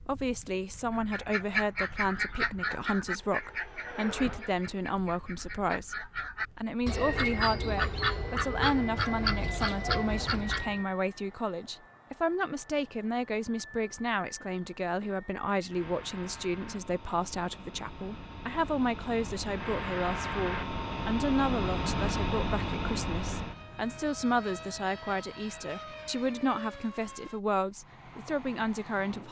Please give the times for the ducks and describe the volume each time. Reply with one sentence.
You can hear the ducks from 0.9 to 10.8 s, getting quieter then louder.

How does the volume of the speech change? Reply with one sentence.
The volume of the speech stays about the same.